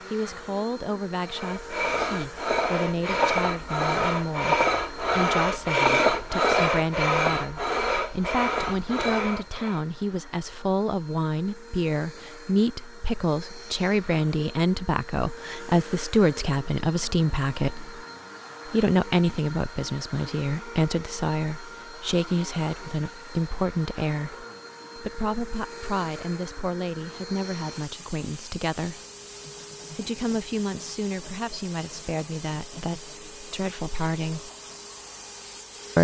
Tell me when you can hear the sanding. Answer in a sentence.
The sanding can be heard from 1.2 to 9.8 s.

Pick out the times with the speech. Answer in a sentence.
You can hear the speech from 0.1 to 18.0 s, from 18.6 to 29.0 s and from 29.9 to 34.5 s.